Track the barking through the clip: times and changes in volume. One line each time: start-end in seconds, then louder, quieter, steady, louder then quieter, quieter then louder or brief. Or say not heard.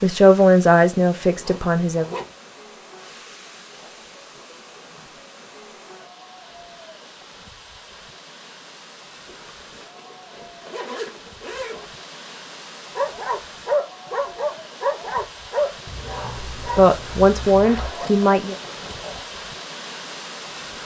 12.9-17.9 quieter.